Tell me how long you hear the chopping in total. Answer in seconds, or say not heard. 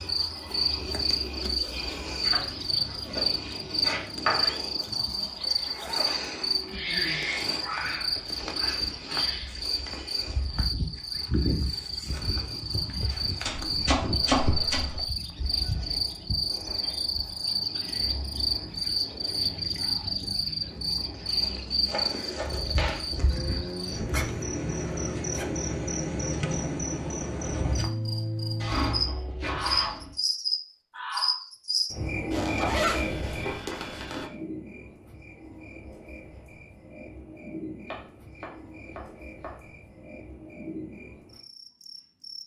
9 s.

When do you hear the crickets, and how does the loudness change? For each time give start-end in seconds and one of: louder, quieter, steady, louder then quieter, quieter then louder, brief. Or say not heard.
0.0-42.4 quieter.